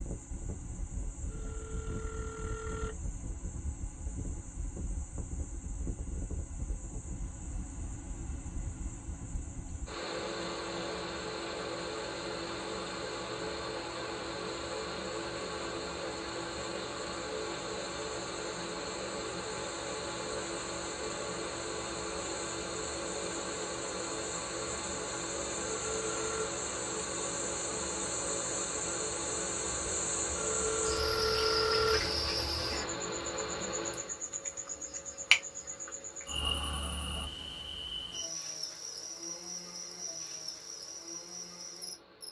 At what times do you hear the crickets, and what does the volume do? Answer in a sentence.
The crickets can be heard from 0.0 to 42.2 s, getting louder.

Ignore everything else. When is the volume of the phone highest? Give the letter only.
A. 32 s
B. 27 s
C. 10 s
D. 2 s
A.